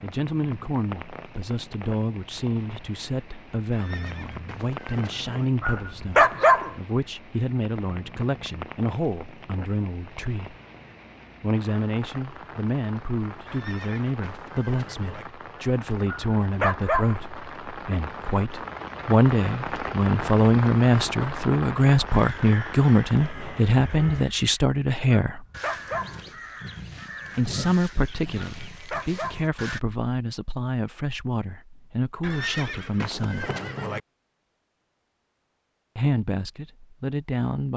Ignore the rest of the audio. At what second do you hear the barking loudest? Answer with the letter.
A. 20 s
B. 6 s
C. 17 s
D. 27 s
B.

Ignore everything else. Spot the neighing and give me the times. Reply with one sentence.
You can hear the neighing from 3.7 to 5.5 s, from 13.4 to 15.2 s and from 32.2 to 34.0 s.